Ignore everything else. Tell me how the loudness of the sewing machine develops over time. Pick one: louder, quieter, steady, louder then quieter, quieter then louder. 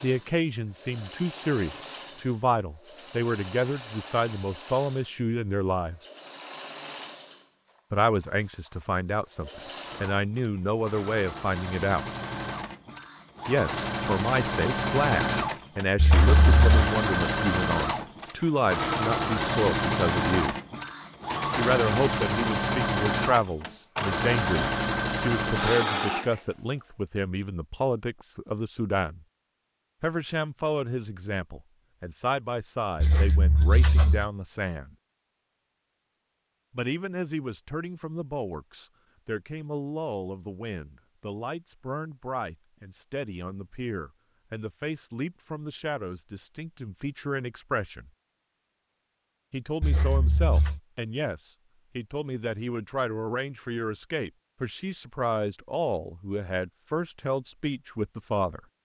louder.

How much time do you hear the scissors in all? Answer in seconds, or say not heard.
3 s.